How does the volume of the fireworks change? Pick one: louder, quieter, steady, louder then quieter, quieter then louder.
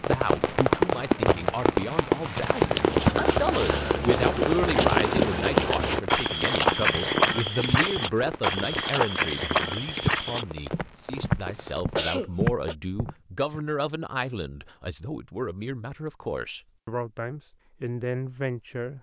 quieter.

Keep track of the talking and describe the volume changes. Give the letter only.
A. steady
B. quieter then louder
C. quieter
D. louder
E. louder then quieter
A.